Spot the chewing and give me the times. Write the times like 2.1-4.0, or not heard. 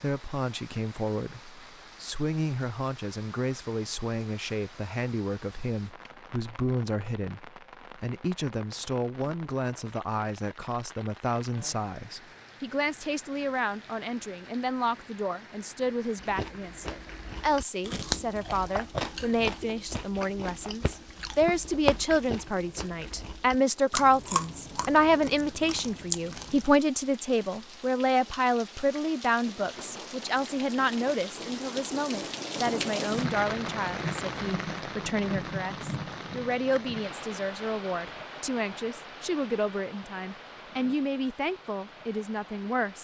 16.2-26.8.